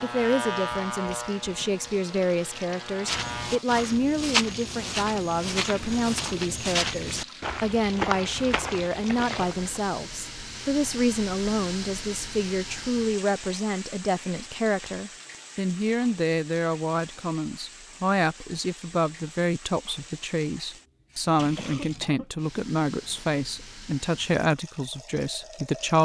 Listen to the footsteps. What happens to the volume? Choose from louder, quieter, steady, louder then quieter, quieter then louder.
quieter.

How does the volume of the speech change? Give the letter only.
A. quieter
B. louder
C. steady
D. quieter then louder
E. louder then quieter
C.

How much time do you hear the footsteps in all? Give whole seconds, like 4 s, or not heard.
7 s.